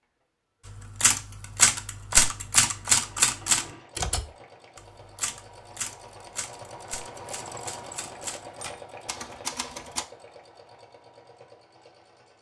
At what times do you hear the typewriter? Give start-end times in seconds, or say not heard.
0.7-10.1.